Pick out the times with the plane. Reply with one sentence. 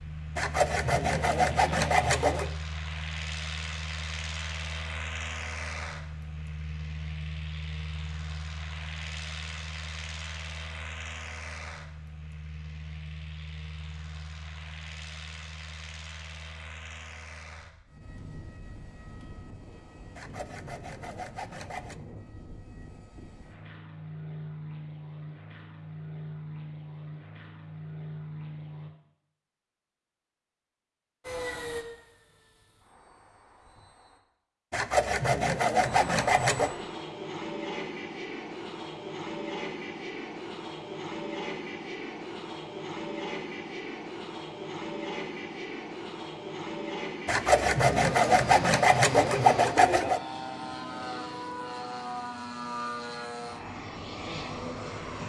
You can hear the plane from 0.0 to 28.9 s, from 31.2 to 34.2 s and from 35.8 to 55.2 s.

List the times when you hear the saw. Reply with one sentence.
The saw can be heard from 0.3 to 2.5 s, from 20.1 to 22.1 s, from 34.7 to 36.8 s and from 47.2 to 50.2 s.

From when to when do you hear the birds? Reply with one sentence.
You can't hear the birds here.